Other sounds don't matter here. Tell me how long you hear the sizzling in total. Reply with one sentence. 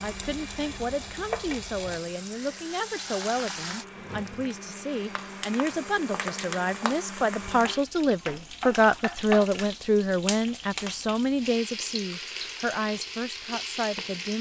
The sizzling can be heard for 14 seconds in total.